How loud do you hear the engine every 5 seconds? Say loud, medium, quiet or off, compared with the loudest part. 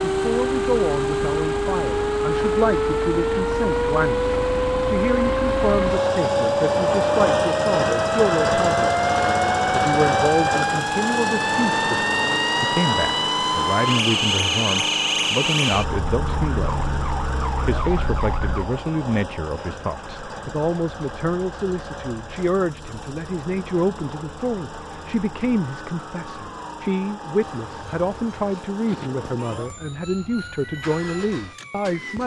medium, loud, loud, medium, quiet, quiet, quiet.